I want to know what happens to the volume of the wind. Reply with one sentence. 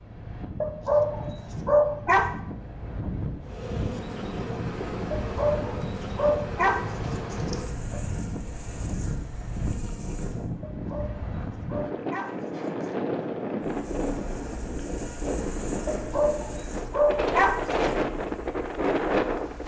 The loudness of the wind goes up.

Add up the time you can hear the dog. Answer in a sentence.
You can hear the dog for 9 seconds altogether.